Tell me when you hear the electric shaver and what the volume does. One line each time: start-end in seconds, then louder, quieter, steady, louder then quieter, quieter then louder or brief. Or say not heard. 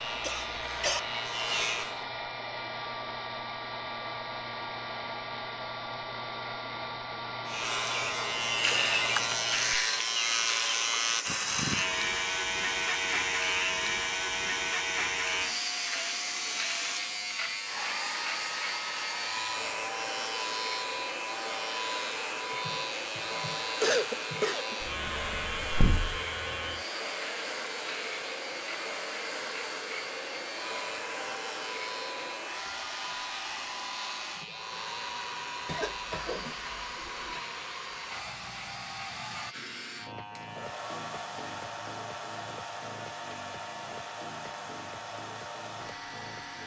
0.0-2.0 brief
7.5-46.6 quieter.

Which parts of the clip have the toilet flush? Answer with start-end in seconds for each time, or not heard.
not heard.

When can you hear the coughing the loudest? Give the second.
24 s.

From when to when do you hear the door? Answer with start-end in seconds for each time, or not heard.
24.8-26.2.